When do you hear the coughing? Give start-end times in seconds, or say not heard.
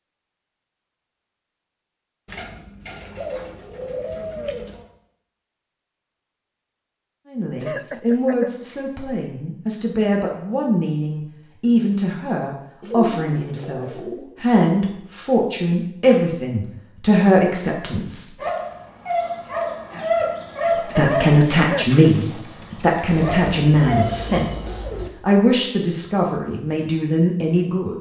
7.6-8.5, 20.9-22.1.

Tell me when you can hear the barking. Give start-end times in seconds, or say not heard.
18.4-24.4.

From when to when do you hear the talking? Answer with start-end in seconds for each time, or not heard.
7.2-18.2, 20.9-27.9.